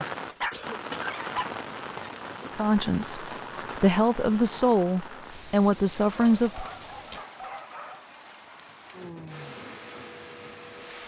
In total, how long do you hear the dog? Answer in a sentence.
The dog can be heard for 4 seconds in total.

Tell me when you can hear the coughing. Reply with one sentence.
The coughing can be heard from 0.5 to 1.1 s.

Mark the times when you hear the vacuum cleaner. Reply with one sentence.
You can hear the vacuum cleaner from 9.2 to 11.0 s.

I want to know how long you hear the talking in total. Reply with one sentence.
You can hear the talking for 4 seconds altogether.